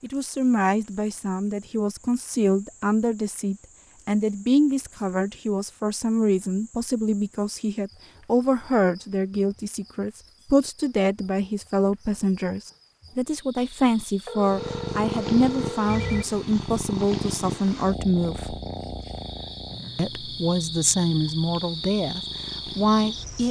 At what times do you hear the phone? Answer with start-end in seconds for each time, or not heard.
14.2-16.2.